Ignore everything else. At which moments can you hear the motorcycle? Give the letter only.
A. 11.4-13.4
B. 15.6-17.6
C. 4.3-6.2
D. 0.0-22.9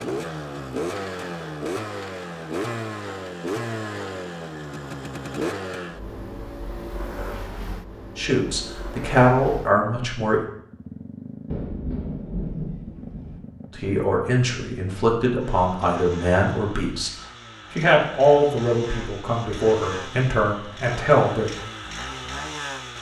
D.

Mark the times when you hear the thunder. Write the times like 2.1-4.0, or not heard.
11.4-13.4.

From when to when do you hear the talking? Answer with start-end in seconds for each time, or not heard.
8.2-10.4, 13.8-17.1, 17.7-21.5.